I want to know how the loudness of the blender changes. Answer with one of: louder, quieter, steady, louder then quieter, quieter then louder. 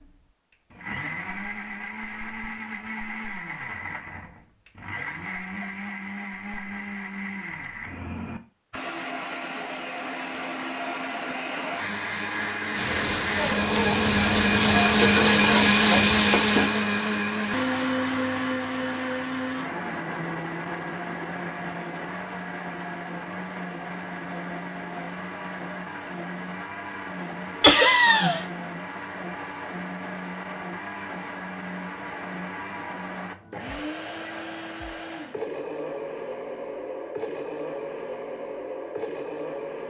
louder then quieter.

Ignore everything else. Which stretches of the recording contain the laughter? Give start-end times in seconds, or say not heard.
27.6-28.4.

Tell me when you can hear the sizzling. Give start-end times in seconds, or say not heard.
12.7-16.8.